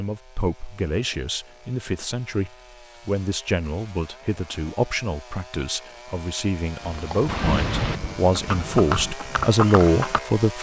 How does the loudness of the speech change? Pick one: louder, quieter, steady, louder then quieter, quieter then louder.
louder.